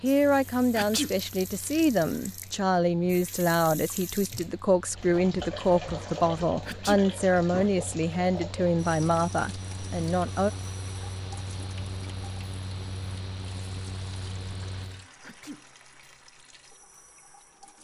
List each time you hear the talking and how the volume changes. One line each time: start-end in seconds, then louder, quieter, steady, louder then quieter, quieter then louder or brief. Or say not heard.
0.0-10.5 steady.